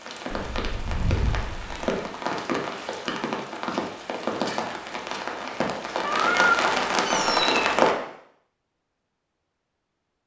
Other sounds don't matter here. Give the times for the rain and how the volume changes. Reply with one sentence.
The rain can be heard from 0.0 to 8.0 s, getting louder.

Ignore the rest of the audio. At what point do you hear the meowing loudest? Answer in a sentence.
The volume of the meowing peaks at 6 seconds.